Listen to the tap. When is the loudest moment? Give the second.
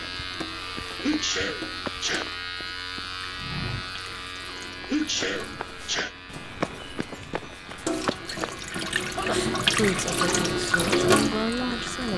11 s.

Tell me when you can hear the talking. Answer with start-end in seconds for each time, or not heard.
9.8-12.1.